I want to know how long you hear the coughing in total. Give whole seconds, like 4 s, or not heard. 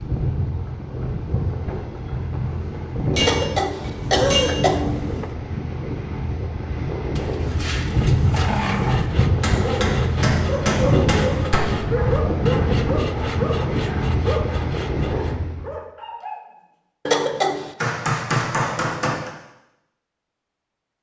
3 s.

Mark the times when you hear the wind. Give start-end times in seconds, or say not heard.
0.0-15.7.